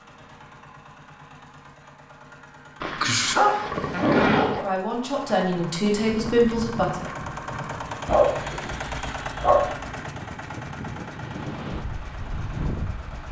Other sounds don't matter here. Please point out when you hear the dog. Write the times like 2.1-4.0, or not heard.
2.8-4.7, 8.1-9.8.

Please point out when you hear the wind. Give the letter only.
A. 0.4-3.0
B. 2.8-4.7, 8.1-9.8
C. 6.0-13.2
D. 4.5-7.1
C.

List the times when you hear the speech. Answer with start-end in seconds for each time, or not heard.
4.5-7.1.